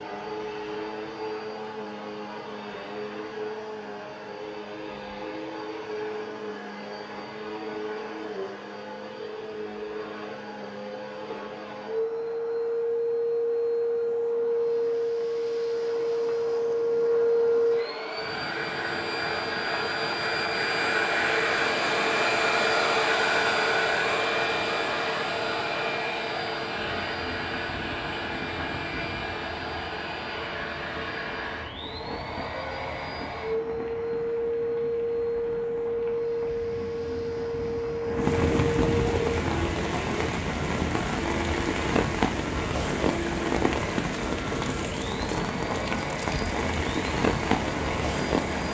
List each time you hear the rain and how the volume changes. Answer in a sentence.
The rain can be heard from 18.1 to 48.6 s, getting louder.